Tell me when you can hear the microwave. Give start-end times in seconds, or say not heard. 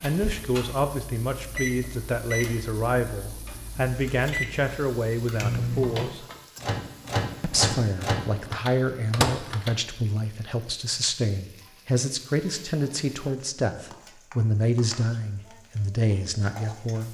0.0-9.8.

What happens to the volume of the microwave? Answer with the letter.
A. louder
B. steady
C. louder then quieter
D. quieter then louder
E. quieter
A.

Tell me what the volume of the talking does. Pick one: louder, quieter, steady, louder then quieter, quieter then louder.
steady.